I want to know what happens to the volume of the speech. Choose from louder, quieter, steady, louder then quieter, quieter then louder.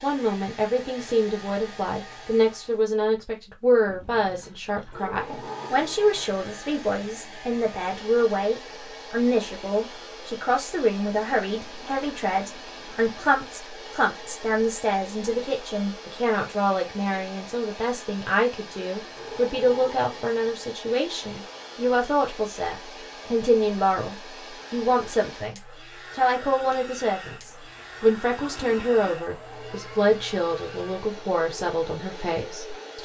steady.